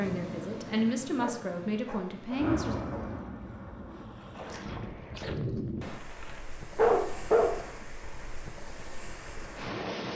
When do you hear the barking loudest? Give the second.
7 s.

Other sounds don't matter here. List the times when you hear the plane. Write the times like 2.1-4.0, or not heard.
2.4-5.2.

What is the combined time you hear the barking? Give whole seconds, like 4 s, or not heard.
3 s.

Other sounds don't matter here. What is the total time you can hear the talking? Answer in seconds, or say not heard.
3 s.